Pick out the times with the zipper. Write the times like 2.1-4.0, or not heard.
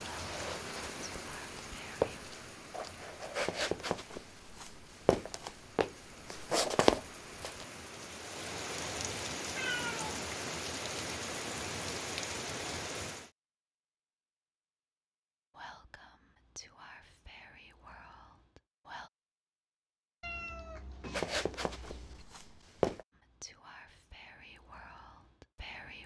not heard.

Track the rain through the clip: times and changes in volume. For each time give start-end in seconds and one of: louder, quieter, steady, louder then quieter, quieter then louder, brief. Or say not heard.
0.0-13.3 quieter then louder.